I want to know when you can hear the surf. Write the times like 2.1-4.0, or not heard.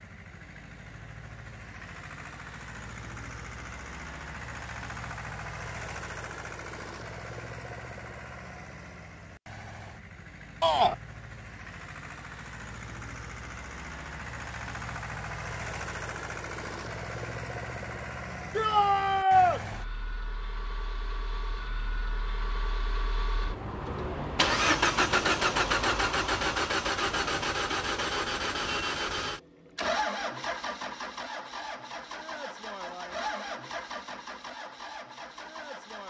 not heard.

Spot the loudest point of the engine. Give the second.
25 s.